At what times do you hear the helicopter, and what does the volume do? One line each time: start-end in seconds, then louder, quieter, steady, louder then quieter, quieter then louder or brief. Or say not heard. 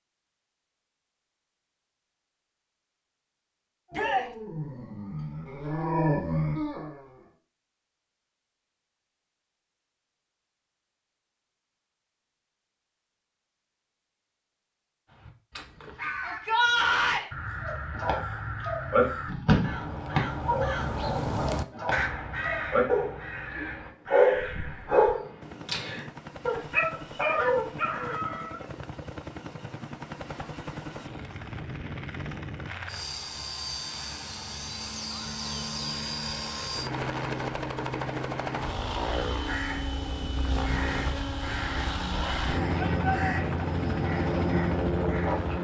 25.4-45.5 louder.